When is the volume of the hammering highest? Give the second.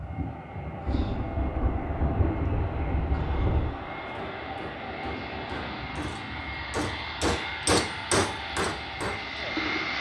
8 s.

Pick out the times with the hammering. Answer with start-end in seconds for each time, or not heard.
3.9-9.9.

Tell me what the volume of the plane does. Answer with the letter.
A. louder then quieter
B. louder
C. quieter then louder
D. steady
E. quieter
D.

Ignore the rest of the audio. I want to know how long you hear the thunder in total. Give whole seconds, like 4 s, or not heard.
3 s.